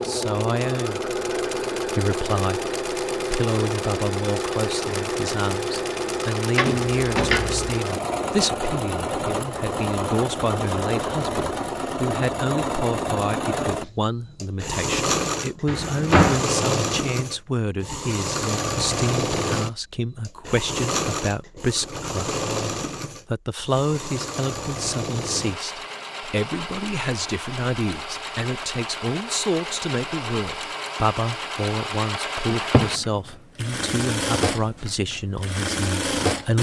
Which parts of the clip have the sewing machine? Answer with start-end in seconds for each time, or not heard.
0.0-36.5.